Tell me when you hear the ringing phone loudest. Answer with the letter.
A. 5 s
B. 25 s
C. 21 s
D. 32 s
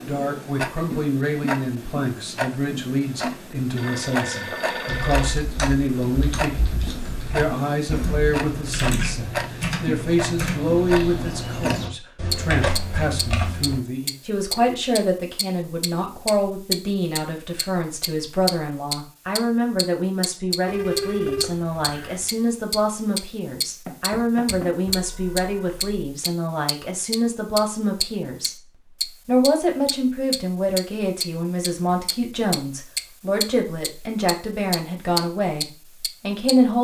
C.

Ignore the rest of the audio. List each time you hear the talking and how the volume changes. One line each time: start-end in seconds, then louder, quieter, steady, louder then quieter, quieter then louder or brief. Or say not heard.
0.1-36.7 steady.